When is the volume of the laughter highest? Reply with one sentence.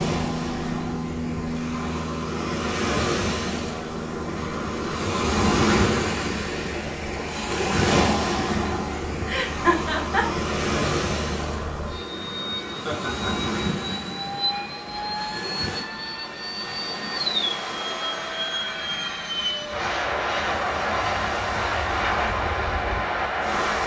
The loudest moment of the laughter is at 10 seconds.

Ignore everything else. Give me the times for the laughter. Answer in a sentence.
The laughter can be heard from 9.2 to 10.2 s and from 12.8 to 13.5 s.